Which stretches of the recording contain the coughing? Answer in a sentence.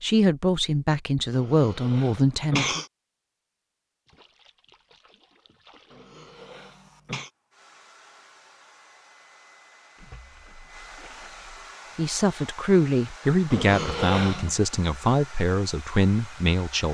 The coughing can be heard from 1.4 to 2.9 s, from 5.9 to 7.3 s and from 13.5 to 14.6 s.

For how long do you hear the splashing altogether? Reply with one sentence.
The splashing can be heard for 4 seconds in total.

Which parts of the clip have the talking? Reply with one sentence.
You can hear the talking from 0.0 to 2.8 s and from 11.9 to 16.8 s.